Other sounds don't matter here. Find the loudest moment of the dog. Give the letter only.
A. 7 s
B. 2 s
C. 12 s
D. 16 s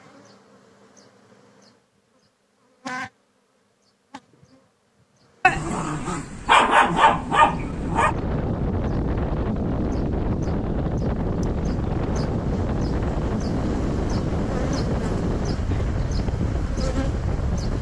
A.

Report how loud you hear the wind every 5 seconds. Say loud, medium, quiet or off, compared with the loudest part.
off, loud, loud, loud.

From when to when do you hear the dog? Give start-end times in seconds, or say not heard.
5.4-8.2.